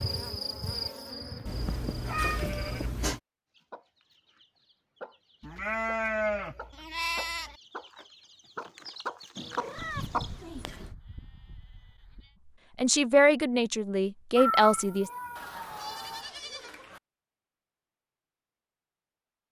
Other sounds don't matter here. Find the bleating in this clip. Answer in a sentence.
The bleating can be heard from 1.6 to 2.9 s, from 5.4 to 7.5 s, from 9.8 to 12.3 s and from 15.3 to 17.0 s.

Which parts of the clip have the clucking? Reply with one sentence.
The clucking can be heard from 3.5 to 10.4 s.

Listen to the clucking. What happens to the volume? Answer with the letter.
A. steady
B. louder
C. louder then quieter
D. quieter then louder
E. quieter
D.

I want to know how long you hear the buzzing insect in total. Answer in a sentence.
You can hear the buzzing insect for 3 seconds altogether.